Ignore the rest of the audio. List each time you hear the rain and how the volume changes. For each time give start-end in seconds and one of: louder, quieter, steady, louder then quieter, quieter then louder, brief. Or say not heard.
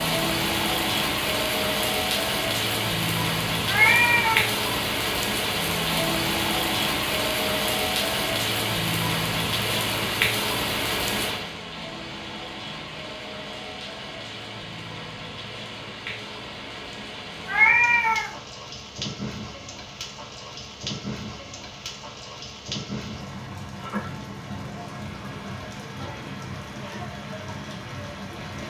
0.0-28.6 quieter.